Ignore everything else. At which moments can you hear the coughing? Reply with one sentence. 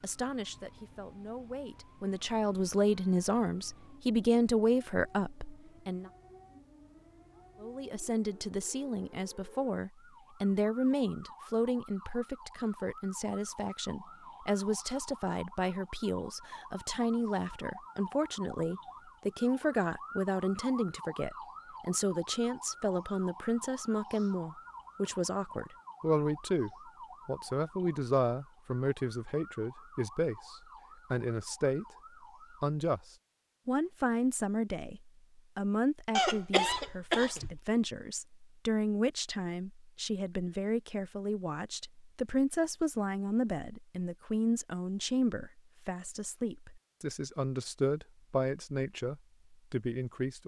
The coughing can be heard from 36.1 to 37.6 s.